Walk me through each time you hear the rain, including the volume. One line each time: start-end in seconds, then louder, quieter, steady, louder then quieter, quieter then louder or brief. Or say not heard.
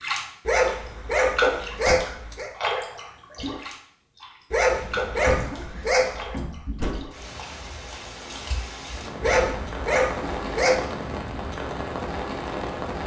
0.0-13.0 quieter then louder.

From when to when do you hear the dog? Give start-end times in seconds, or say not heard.
0.5-2.5, 4.5-6.3, 9.2-10.8.